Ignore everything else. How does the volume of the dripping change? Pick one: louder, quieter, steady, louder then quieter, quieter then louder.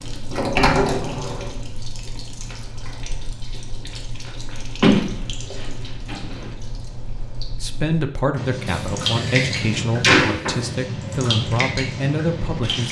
louder.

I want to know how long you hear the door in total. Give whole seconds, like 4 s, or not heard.
5 s.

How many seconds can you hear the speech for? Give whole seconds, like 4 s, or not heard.
5 s.